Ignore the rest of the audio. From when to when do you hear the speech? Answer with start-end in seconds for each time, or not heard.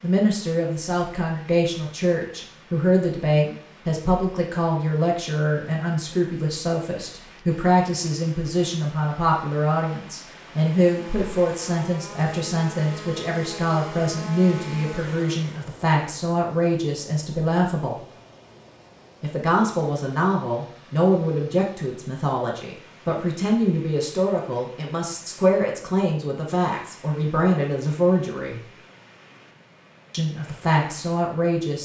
0.0-18.0, 19.2-28.6, 30.1-31.7.